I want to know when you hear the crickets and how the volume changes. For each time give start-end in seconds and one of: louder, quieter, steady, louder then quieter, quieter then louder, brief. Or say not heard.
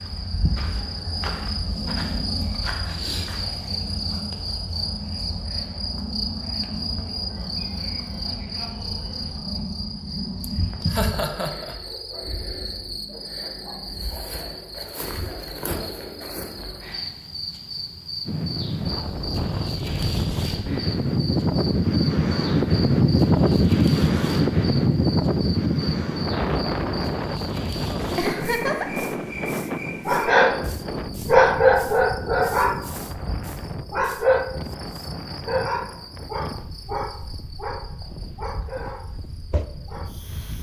0.0-40.5 quieter.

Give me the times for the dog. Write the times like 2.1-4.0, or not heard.
28.3-40.1.